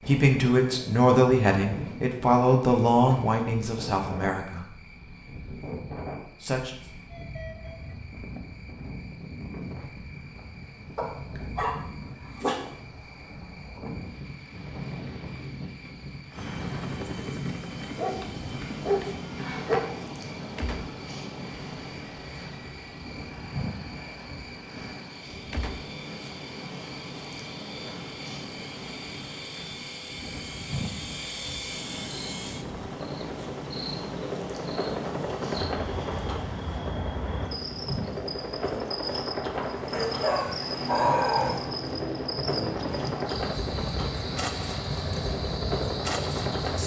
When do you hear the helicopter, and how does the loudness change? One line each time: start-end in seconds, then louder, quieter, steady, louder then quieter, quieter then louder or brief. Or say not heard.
16.3-46.8 quieter then louder.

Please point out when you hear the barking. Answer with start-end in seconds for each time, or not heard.
10.9-12.6, 17.9-19.9, 39.9-41.6.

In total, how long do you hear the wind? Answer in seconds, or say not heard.
47 s.